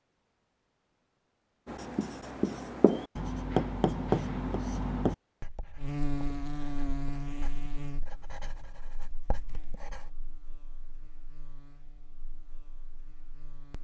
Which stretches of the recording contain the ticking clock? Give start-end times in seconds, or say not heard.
not heard.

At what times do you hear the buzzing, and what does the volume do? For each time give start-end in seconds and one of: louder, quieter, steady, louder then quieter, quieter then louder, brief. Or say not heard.
5.8-13.7 quieter.